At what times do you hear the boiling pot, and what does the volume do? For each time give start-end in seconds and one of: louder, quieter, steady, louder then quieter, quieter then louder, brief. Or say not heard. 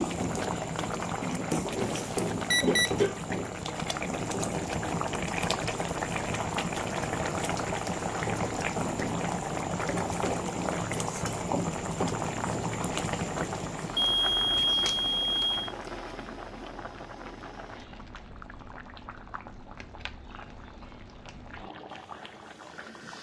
0.0-23.1 quieter.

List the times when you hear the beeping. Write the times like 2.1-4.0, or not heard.
1.8-3.0, 13.9-15.7.